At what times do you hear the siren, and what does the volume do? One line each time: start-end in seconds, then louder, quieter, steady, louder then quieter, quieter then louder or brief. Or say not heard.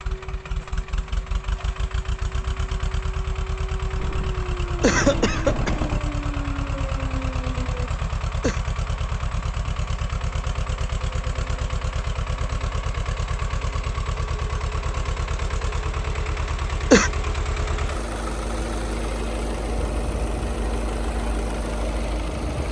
0.0-8.0 louder.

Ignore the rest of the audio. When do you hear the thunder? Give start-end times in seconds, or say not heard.
4.0-6.0.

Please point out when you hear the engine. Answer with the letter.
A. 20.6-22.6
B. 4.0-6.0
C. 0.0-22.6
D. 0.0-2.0
C.